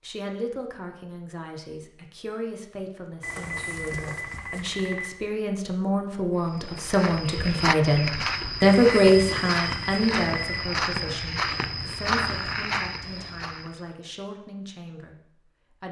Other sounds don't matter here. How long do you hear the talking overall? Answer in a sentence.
You can hear the talking for 16 seconds altogether.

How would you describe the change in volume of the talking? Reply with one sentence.
The loudness of the talking goes up, then down.